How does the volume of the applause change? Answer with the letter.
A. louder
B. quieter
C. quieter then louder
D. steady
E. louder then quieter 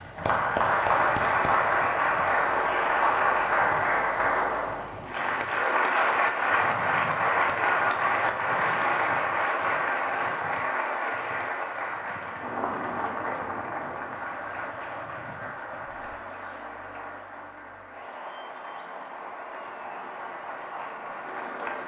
B.